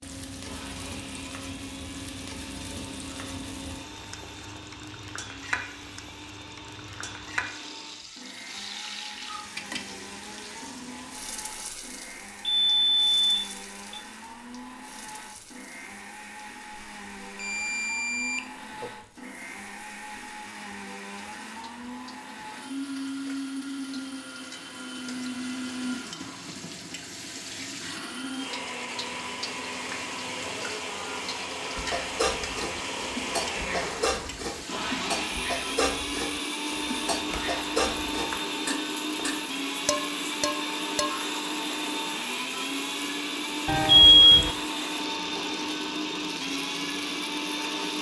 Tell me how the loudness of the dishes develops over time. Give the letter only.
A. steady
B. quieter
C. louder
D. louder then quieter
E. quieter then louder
A.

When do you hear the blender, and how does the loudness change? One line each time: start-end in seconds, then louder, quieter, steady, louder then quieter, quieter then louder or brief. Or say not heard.
0.3-47.9 louder.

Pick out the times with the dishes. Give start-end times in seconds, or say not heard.
31.8-41.2.